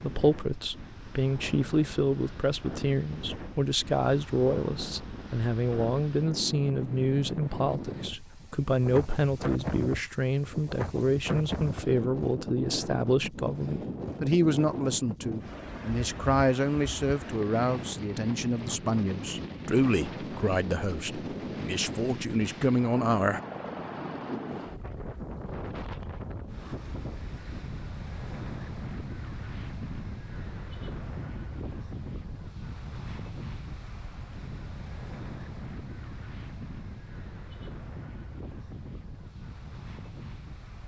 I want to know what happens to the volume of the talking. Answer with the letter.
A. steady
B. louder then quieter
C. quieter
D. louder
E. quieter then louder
A.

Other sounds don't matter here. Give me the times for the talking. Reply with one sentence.
The talking can be heard from 0.0 to 23.4 s.